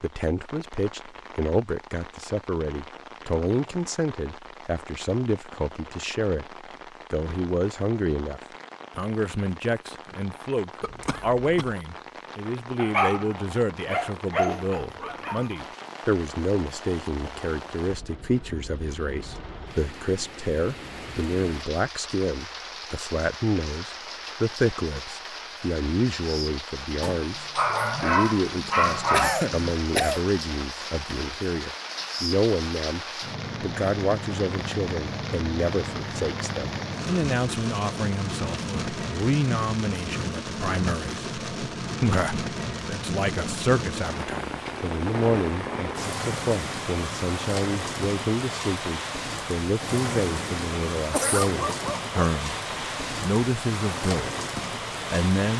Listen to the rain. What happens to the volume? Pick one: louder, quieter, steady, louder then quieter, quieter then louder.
louder.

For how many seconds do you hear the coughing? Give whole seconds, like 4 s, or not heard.
3 s.